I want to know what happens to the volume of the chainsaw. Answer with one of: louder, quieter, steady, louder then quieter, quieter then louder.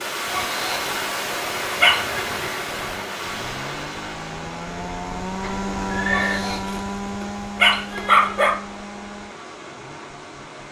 louder then quieter.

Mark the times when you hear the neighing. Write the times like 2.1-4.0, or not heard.
5.4-6.4.